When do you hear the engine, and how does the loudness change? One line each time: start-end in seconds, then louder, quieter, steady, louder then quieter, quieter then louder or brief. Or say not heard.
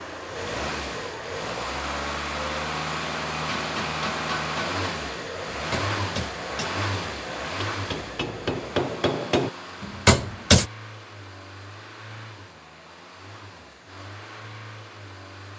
0.0-15.5 quieter.